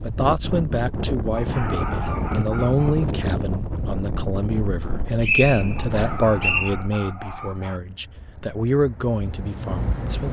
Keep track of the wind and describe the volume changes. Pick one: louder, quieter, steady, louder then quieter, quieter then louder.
quieter.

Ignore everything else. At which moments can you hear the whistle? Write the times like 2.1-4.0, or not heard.
4.8-6.7.